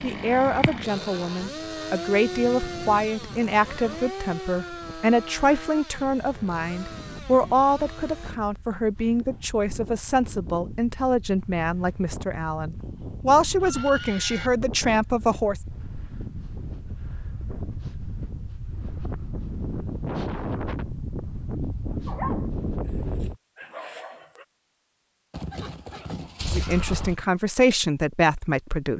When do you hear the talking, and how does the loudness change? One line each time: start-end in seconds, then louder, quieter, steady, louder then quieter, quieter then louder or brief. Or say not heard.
0.0-15.6 steady
26.5-28.9 brief.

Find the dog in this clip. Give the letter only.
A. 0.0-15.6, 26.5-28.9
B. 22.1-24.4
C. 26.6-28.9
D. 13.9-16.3
B.